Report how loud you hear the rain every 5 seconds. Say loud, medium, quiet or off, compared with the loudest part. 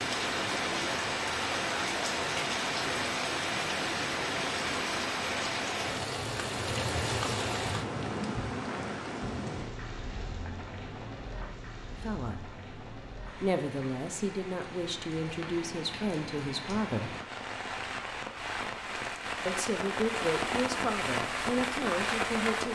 loud, loud, quiet, medium, loud.